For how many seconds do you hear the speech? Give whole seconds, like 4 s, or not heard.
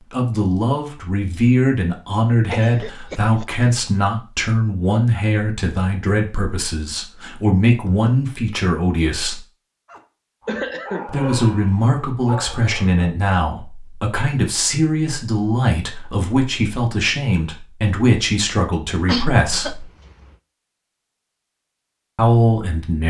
19 s.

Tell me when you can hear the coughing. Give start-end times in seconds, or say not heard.
2.5-3.6, 10.4-11.1, 18.9-20.3.